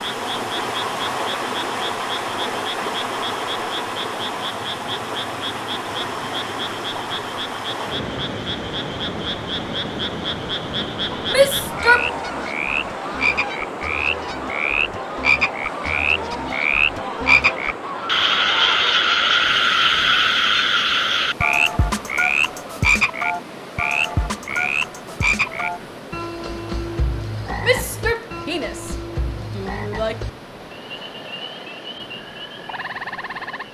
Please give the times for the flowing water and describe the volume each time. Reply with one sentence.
You can hear the flowing water from 0.0 to 33.6 s, getting quieter.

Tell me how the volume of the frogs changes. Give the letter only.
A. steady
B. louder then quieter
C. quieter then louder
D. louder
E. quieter
B.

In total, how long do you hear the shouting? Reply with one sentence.
The shouting can be heard for 3 seconds in total.